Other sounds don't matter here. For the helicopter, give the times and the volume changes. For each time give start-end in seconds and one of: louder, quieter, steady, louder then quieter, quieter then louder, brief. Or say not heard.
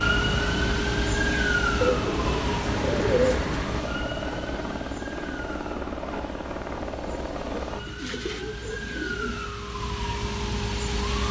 0.0-7.8 steady.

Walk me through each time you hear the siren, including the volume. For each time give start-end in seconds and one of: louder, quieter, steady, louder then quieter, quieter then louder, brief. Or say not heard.
0.0-11.2 quieter then louder.